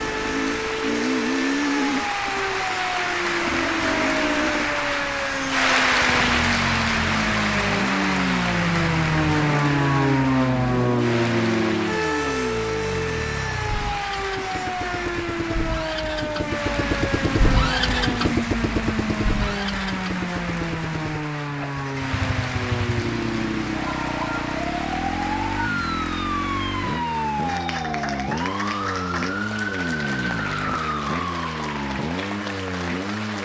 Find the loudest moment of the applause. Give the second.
6 s.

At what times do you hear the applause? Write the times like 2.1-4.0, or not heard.
0.0-33.4.